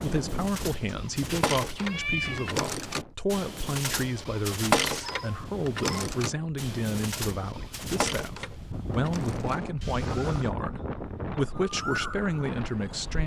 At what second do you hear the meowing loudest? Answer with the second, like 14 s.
2 s.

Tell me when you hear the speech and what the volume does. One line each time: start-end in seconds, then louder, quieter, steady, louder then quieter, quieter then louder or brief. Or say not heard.
0.0-13.2 steady.